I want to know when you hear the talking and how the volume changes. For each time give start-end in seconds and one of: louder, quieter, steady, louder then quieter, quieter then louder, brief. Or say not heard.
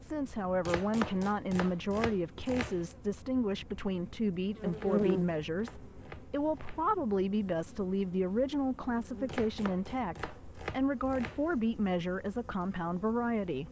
0.0-13.6 steady.